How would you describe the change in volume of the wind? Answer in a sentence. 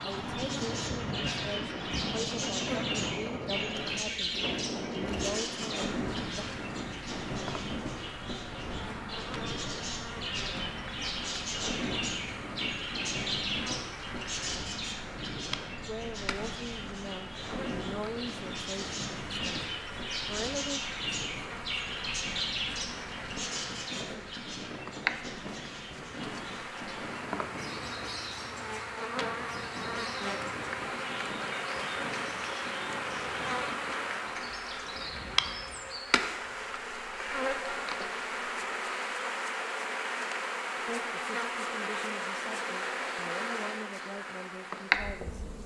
The loudness of the wind goes down.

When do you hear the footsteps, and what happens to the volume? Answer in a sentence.
You can't hear the footsteps here.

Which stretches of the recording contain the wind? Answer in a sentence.
The wind can be heard from 0.0 to 35.8 s.